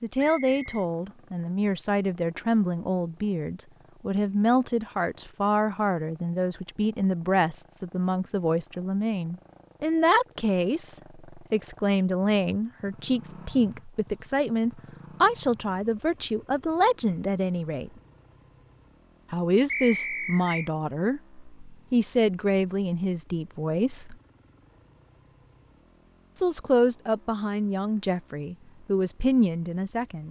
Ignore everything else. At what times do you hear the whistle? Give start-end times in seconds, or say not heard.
0.1-0.8, 19.6-20.7.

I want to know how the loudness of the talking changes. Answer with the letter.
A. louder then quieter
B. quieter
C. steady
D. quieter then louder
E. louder
C.